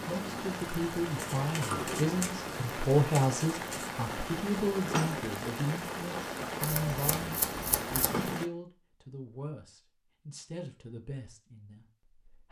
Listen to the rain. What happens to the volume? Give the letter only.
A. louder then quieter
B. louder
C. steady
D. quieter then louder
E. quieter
C.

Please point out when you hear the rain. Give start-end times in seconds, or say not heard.
0.0-8.5.